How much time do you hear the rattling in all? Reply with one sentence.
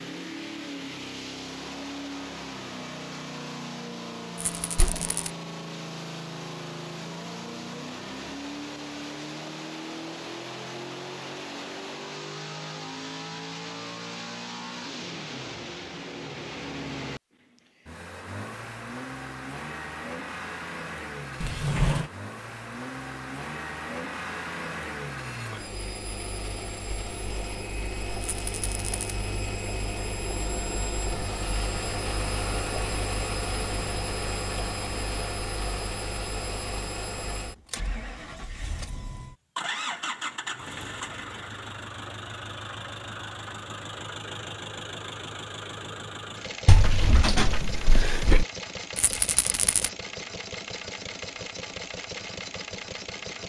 The rattling can be heard for 3 seconds in total.